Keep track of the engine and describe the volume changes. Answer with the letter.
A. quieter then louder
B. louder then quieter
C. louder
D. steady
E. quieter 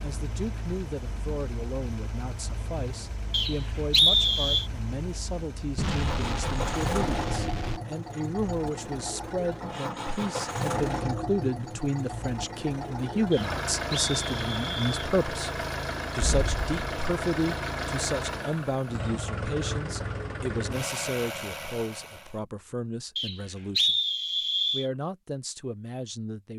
C.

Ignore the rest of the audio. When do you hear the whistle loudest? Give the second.
4 s.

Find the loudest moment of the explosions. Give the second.
6 s.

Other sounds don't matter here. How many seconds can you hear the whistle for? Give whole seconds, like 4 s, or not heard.
5 s.